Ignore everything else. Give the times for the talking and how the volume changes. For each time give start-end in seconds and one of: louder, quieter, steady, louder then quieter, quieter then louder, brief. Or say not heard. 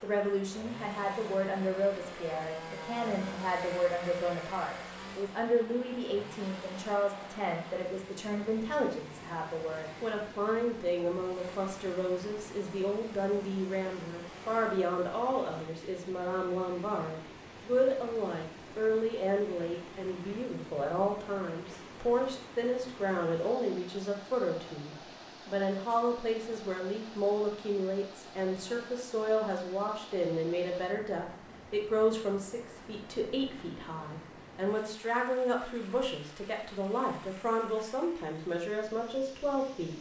0.0-39.9 steady.